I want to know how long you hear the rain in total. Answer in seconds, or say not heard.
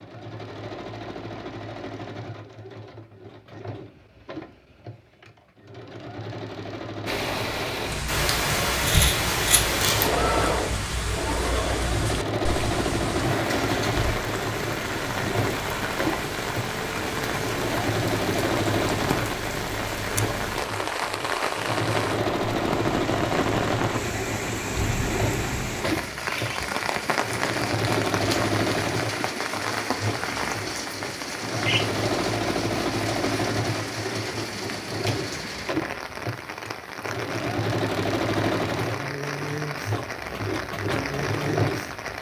35 s.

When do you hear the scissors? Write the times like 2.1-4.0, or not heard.
8.1-10.1.